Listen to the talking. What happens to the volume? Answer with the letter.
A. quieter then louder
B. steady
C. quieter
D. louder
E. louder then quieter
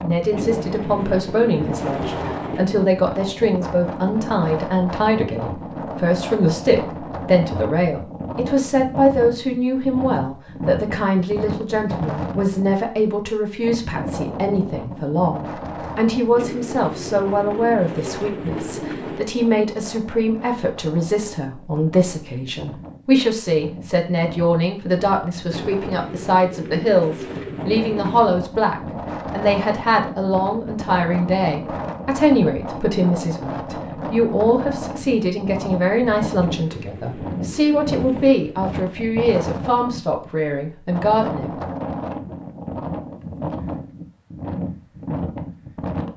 B.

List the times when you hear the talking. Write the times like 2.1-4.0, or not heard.
0.0-41.5.